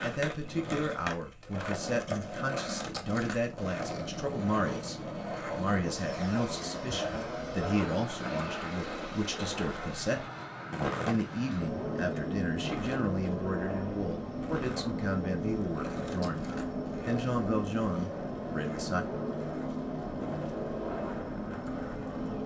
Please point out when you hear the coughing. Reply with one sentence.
The coughing can't be heard in this clip.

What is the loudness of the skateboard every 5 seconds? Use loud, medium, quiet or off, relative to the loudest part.
loud, loud, loud, medium, medium.